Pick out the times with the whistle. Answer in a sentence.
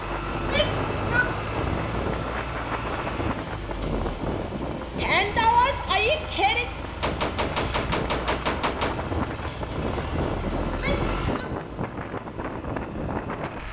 You can't hear the whistle here.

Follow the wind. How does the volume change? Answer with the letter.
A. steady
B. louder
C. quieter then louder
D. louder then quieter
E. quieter
C.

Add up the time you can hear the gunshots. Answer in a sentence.
The gunshots can be heard for 2 seconds in total.